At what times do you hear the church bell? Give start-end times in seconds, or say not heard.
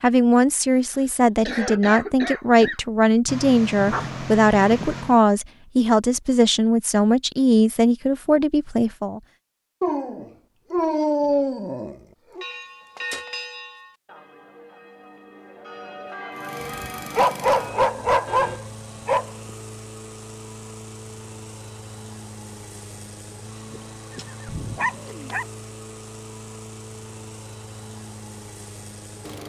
12.3-18.6.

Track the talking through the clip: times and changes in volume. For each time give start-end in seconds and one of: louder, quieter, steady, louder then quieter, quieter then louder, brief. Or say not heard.
0.0-9.2 steady.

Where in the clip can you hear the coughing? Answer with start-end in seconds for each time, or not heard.
0.8-2.8.